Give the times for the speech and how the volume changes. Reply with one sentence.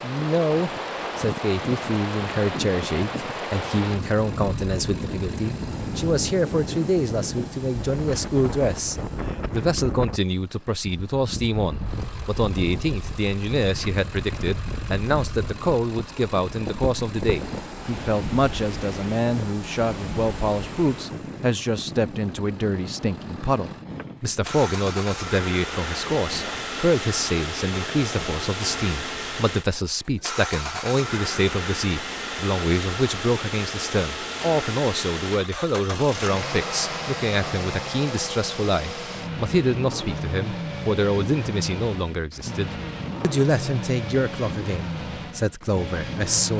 You can hear the speech from 0.0 to 46.5 s, at a steady volume.